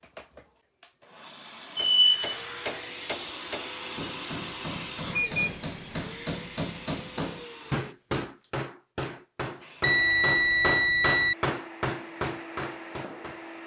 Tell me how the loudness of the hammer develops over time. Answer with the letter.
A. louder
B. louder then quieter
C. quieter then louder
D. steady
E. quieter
A.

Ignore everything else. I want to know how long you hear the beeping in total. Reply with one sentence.
You can hear the beeping for 3 seconds altogether.